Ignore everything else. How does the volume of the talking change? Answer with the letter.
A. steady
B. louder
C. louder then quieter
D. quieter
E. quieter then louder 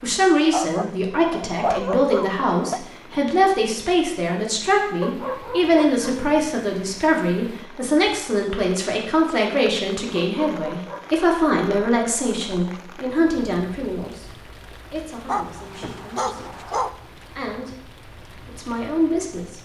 D.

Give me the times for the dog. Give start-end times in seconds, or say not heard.
0.5-2.8, 5.0-6.2, 10.2-11.2, 15.2-16.9.